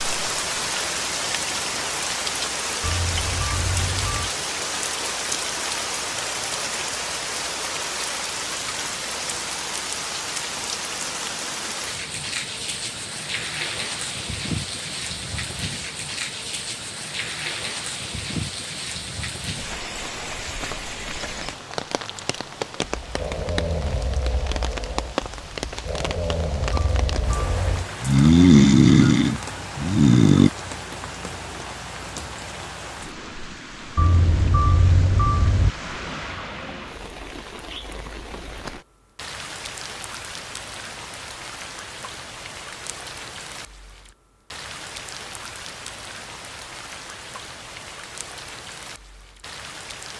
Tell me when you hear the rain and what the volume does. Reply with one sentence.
The rain can be heard from 0.0 to 50.1 s, getting quieter.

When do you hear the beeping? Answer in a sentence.
You can hear the beeping from 2.8 to 4.3 s, from 26.7 to 27.9 s and from 34.0 to 35.7 s.